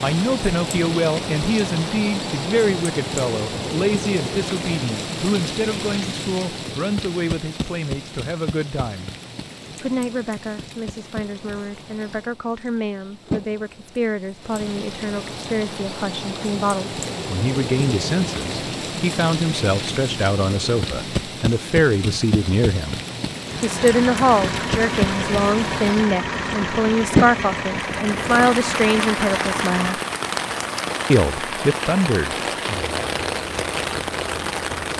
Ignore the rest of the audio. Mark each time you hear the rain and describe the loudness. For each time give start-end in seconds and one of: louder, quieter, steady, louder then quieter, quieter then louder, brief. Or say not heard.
0.0-34.9 quieter then louder.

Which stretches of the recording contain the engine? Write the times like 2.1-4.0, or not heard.
23.4-34.9.